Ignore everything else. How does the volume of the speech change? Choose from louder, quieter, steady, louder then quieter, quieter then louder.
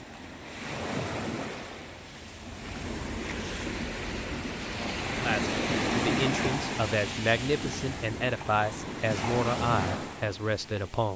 steady.